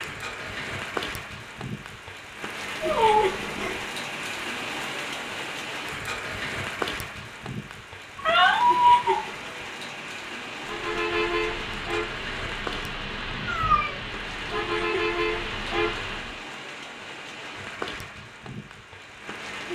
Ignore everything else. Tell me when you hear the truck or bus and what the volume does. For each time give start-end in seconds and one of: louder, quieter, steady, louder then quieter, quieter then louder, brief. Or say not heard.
10.6-16.4 quieter then louder.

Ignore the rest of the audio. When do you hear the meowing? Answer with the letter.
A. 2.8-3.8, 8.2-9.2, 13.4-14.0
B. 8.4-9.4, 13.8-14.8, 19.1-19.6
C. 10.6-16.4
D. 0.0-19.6
A.